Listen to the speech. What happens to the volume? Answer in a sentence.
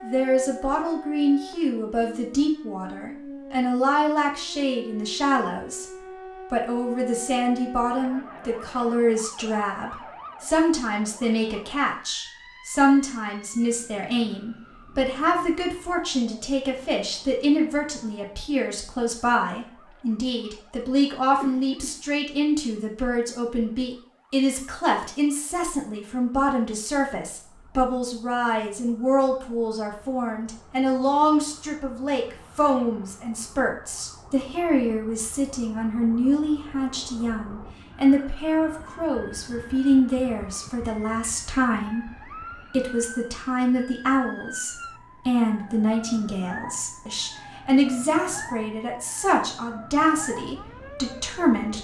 The loudness of the speech stays about the same.